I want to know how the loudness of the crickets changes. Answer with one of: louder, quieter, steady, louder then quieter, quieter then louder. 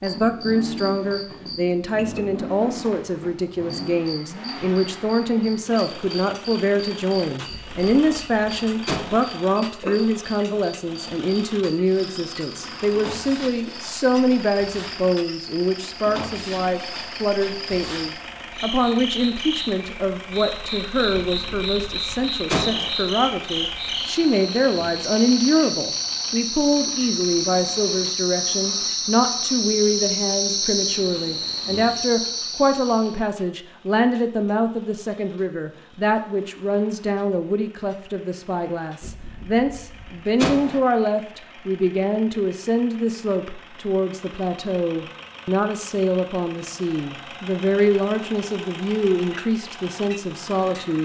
louder.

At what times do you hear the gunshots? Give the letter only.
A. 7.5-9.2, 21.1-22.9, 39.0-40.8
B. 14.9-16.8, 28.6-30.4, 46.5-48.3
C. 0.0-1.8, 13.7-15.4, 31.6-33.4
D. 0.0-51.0
A.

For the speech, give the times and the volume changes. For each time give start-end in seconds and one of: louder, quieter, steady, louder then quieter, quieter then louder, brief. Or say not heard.
0.0-51.0 steady.